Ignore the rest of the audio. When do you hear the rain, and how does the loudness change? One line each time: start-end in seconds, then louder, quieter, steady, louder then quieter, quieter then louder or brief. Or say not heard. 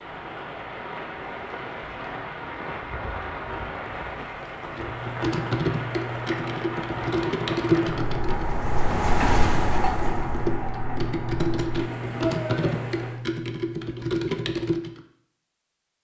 0.0-13.2 louder then quieter.